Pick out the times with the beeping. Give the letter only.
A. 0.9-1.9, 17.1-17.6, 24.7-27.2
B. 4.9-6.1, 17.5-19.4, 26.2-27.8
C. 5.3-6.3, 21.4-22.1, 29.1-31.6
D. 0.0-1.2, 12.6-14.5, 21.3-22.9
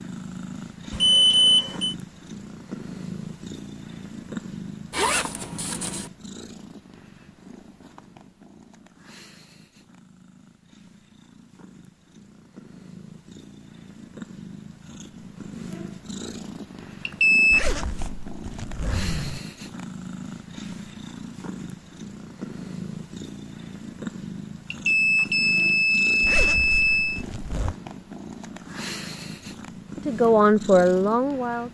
A.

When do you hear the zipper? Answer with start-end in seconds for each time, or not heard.
4.9-6.1, 17.5-19.4, 26.2-27.8.